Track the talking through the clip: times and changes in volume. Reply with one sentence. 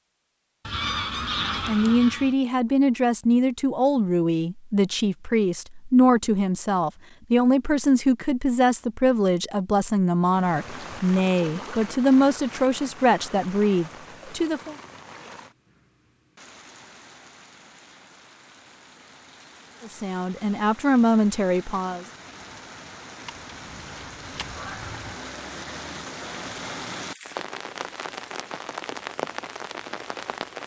You can hear the talking from 1.4 to 14.8 s, at a steady volume; and briefly from 19.8 to 22.1 s.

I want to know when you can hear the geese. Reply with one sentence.
You can hear the geese from 0.7 to 2.4 s and from 23.2 to 25.1 s.